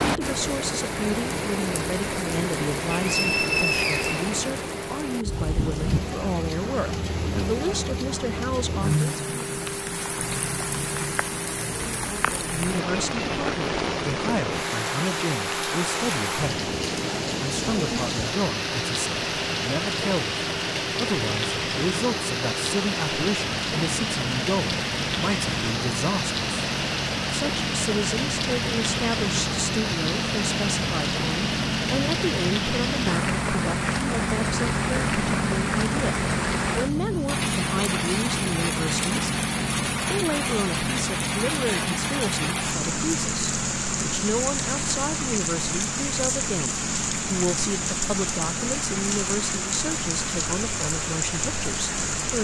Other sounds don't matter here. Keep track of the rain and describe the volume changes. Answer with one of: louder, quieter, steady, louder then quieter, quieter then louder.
steady.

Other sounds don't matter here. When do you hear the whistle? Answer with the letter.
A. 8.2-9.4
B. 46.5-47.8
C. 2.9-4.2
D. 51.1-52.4
C.